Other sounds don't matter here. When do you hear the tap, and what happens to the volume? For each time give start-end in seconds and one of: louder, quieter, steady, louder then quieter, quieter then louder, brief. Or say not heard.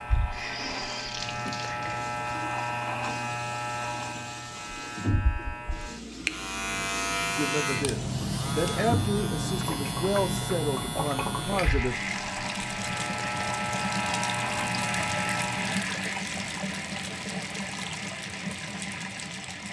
0.0-19.6 louder.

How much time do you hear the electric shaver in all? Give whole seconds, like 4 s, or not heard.
16 s.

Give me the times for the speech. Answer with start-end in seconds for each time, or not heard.
7.3-11.9.